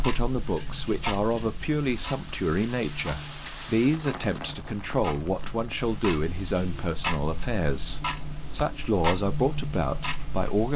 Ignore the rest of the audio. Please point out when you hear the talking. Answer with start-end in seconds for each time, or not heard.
0.0-10.7.